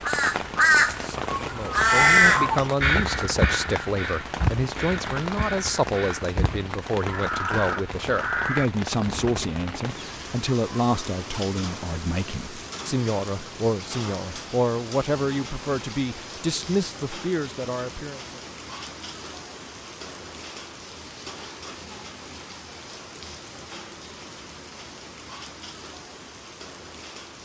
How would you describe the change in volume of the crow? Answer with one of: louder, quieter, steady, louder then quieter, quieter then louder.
quieter.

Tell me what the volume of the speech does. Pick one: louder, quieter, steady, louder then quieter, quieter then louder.
steady.